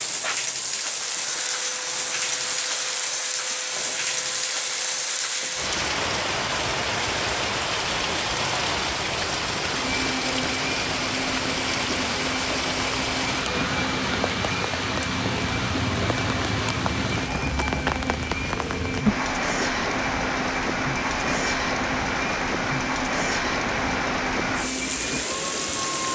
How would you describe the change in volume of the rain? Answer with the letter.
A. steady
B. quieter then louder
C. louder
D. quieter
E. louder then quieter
A.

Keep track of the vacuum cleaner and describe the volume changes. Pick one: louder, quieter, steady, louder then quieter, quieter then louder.
steady.